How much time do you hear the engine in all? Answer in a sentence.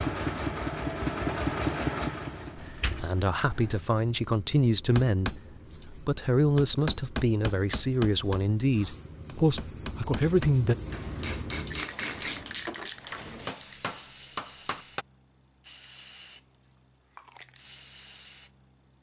The engine can be heard for 4 seconds in total.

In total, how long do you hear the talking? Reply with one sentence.
The talking can be heard for 8 seconds in total.